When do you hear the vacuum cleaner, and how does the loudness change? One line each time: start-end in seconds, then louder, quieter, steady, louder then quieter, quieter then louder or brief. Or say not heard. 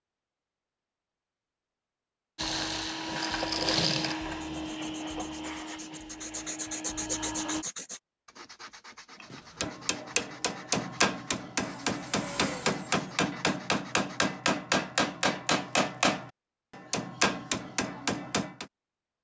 2.4-7.7 quieter
11.6-13.1 brief.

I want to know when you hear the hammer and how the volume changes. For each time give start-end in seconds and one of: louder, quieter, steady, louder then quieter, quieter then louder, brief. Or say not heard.
9.2-18.6 steady.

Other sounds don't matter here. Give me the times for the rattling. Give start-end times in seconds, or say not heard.
3.2-4.2.